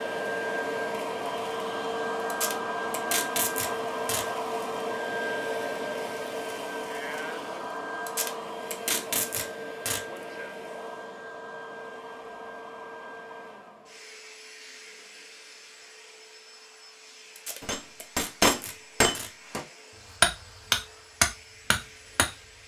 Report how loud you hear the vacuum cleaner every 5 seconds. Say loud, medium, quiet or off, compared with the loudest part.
loud, loud, medium, quiet, quiet.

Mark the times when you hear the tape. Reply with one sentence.
You can hear the tape from 2.3 to 4.2 s, from 8.1 to 10.0 s and from 17.4 to 19.3 s.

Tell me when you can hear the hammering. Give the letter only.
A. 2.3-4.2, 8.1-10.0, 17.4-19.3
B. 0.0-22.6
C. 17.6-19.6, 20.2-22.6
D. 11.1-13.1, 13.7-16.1
C.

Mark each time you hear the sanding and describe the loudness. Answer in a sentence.
You can't hear the sanding here.